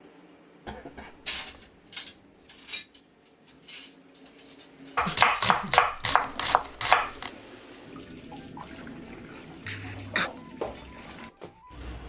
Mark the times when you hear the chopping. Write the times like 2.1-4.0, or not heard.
5.0-7.3.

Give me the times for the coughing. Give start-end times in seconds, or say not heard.
0.7-1.6, 5.0-5.8, 9.7-10.3.